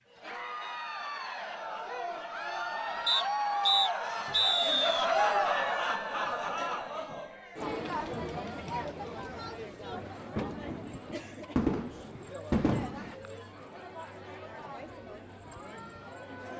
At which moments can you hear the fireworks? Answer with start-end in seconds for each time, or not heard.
9.9-13.2.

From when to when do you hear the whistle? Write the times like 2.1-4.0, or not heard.
3.0-5.0.